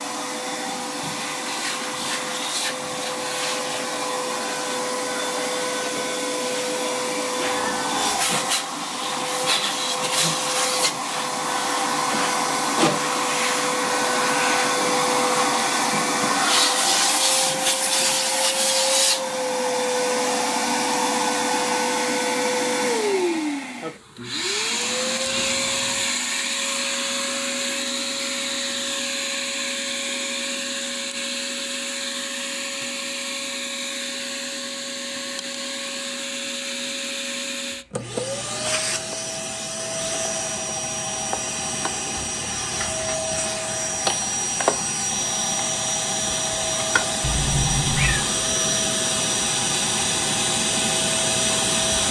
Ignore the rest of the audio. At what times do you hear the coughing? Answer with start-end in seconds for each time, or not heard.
not heard.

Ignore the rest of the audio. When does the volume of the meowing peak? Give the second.
48 s.